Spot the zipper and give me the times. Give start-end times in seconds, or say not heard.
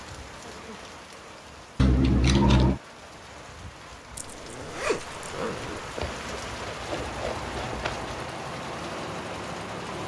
4.2-5.8.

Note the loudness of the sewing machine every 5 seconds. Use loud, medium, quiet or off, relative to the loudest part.
off, loud.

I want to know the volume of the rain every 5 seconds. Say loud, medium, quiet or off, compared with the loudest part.
medium, loud.